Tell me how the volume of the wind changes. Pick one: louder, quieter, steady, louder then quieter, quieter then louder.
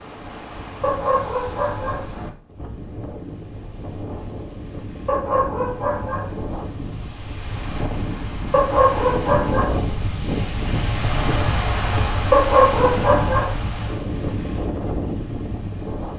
louder.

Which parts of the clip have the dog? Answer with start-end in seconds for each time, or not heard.
0.8-2.0, 5.0-6.3, 8.5-9.8, 12.3-13.6.